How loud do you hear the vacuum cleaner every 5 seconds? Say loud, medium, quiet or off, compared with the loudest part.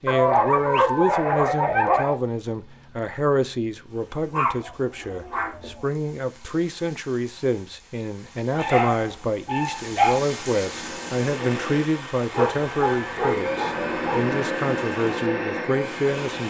off, off, loud, loud.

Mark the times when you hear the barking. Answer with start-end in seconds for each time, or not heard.
0.1-2.1, 4.3-5.8, 8.5-10.2, 12.3-14.3.